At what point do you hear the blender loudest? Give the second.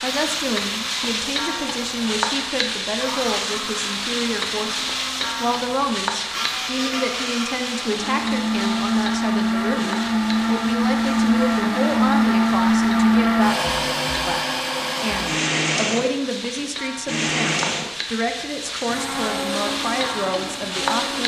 13 s.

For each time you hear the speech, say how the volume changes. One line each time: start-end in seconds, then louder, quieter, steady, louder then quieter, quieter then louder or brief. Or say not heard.
0.0-21.2 steady.